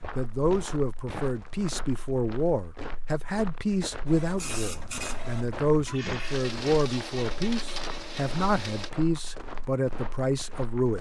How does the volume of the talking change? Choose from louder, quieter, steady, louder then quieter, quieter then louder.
steady.